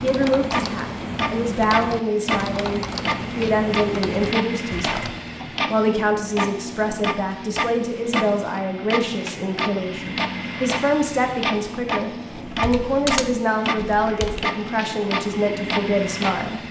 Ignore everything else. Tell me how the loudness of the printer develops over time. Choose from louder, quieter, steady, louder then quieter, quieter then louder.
steady.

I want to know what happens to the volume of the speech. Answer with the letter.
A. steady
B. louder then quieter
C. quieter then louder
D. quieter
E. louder
A.